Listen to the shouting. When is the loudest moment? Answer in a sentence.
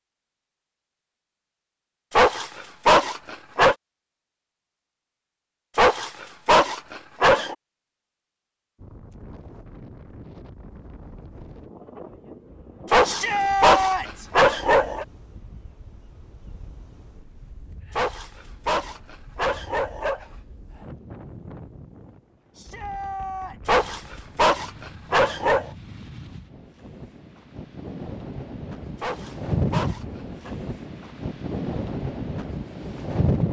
The loudest moment of the shouting is at 14 seconds.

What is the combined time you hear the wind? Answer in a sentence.
You can hear the wind for 25 seconds altogether.